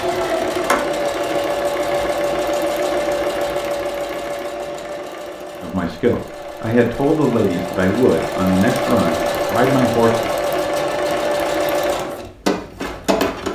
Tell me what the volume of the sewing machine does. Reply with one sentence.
The volume of the sewing machine goes down, then up.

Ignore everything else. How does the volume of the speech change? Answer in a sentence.
The loudness of the speech stays about the same.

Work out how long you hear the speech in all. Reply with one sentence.
The speech can be heard for 5 seconds in total.